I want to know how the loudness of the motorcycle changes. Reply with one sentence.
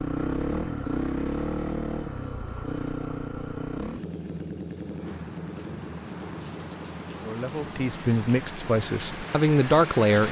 The volume of the motorcycle goes down.